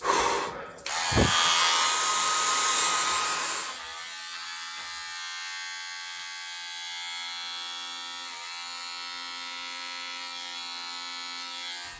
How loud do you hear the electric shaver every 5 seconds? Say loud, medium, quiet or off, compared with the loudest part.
loud, medium, medium.